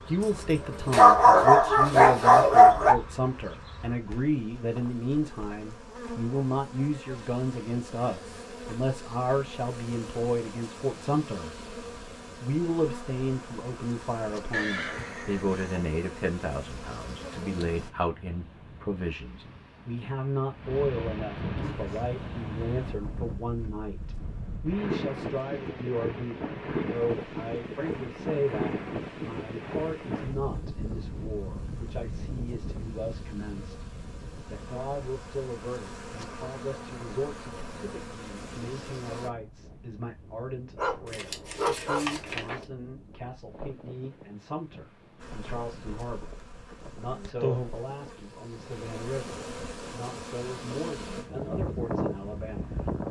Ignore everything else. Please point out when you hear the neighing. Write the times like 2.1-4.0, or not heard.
14.5-15.8.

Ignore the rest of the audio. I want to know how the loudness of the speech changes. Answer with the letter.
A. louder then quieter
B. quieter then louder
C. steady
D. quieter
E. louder
D.